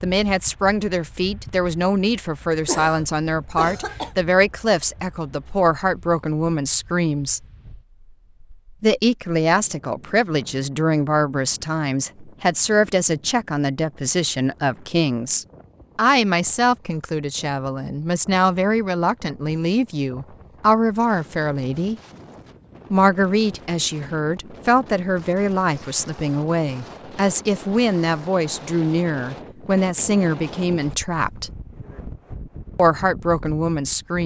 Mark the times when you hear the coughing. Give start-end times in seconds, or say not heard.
2.6-4.2.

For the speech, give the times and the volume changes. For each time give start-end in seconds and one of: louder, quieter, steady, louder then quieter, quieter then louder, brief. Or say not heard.
0.0-7.4 steady
8.8-21.9 steady
22.9-31.5 steady
32.8-34.2 brief.